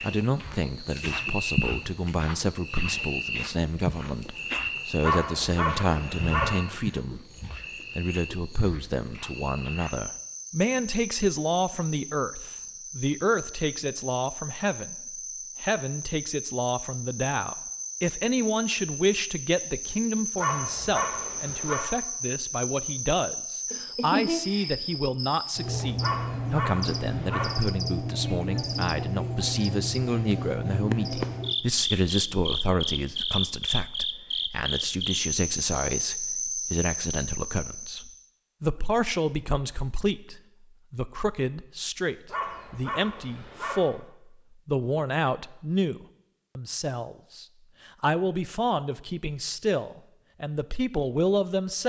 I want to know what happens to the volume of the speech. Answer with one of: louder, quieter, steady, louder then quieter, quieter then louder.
steady.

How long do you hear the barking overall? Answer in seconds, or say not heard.
6 s.